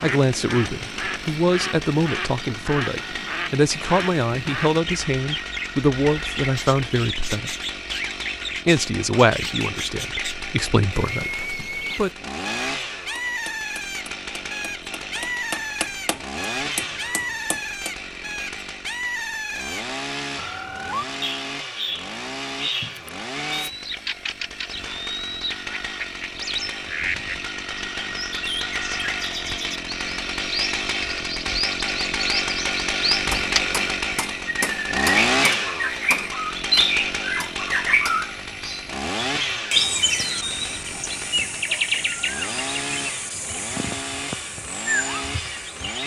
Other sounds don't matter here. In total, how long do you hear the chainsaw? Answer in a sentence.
You can hear the chainsaw for 46 seconds altogether.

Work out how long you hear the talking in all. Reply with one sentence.
The talking can be heard for 11 seconds in total.